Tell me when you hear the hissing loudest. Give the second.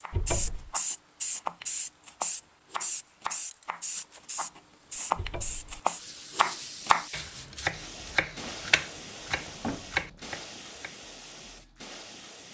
1 s.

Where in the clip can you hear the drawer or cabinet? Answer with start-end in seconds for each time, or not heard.
0.1-0.8, 5.2-5.8, 8.4-10.2.